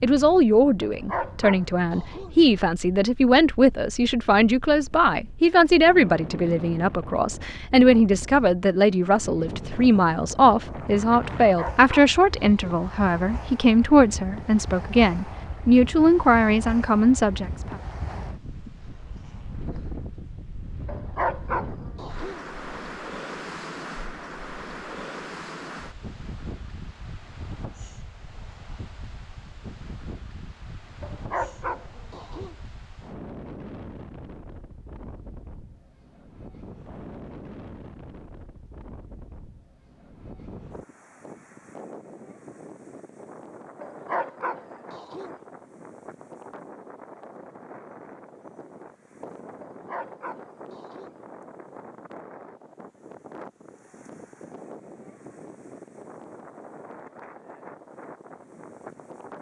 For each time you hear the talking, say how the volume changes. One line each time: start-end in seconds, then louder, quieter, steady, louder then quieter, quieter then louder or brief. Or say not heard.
0.0-17.8 steady.